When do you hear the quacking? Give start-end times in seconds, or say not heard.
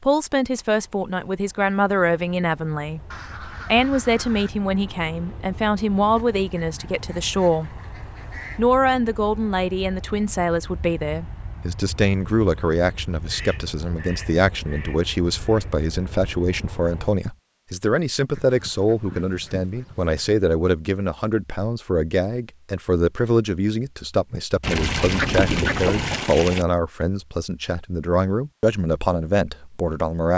3.1-4.5, 6.2-8.7, 13.2-15.8, 18.3-20.4, 24.6-26.6.